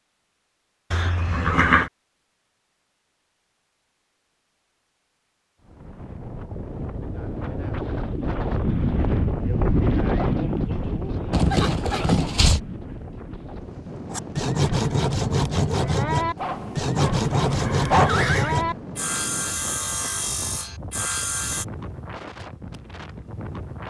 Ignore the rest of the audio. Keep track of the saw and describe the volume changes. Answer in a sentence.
The loudness of the saw goes down.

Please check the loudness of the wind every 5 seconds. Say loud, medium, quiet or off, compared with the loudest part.
off, loud, loud, medium, medium.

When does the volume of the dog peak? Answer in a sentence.
The loudest moment of the dog is at 18 seconds.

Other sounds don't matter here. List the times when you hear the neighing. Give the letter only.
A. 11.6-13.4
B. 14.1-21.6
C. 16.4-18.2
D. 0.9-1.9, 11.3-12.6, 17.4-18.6
D.